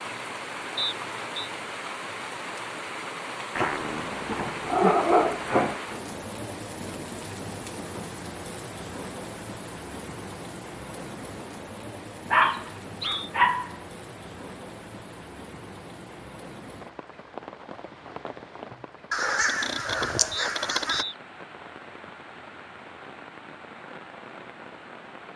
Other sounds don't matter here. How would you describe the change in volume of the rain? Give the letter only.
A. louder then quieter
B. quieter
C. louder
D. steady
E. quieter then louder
B.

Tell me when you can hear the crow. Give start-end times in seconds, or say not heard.
19.1-21.1.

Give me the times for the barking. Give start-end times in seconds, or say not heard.
3.5-5.8, 12.3-13.8, 18.7-20.5.